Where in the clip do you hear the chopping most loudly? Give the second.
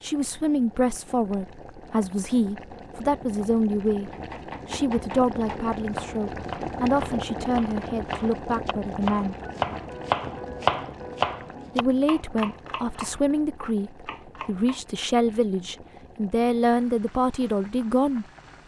11 s.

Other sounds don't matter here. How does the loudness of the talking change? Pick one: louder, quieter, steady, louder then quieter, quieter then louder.
steady.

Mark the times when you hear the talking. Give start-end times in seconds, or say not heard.
0.0-9.3, 11.8-18.2.